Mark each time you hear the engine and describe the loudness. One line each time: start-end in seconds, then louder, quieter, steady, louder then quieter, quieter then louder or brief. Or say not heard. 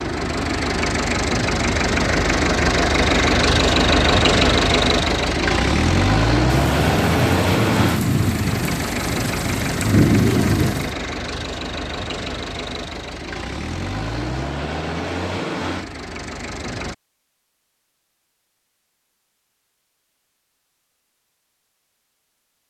0.0-16.9 quieter.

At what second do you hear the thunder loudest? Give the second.
10 s.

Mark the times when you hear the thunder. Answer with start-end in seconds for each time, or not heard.
6.5-10.9.